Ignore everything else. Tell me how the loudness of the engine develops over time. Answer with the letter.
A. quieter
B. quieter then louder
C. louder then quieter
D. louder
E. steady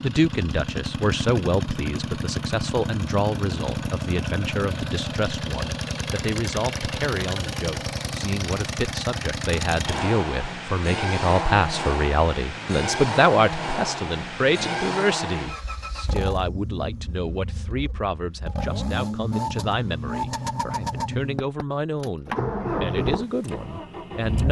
E.